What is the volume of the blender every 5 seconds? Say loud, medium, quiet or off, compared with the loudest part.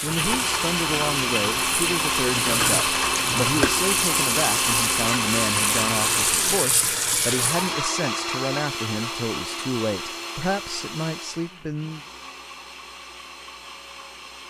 loud, loud, quiet.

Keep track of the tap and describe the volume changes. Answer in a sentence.
The loudness of the tap goes up.